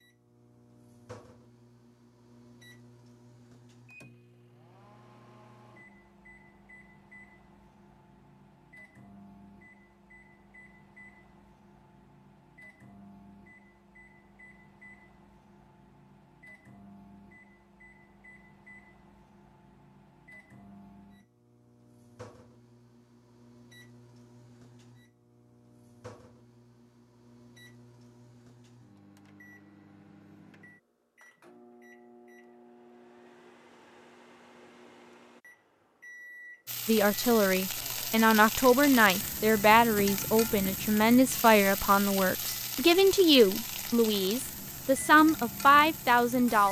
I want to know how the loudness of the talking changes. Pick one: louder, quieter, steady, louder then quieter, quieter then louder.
steady.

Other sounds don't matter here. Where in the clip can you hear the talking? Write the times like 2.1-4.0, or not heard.
36.9-46.6.